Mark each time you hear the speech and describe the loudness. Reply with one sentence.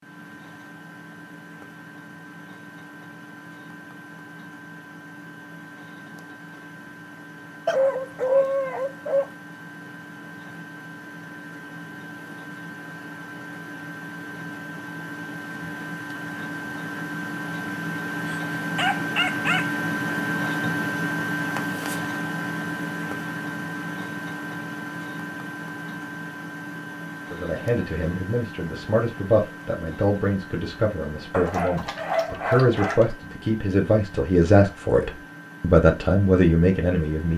You can hear the speech from 27.3 to 37.3 s, getting louder.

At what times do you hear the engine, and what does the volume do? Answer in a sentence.
The engine can be heard from 0.0 to 37.3 s, getting louder then quieter.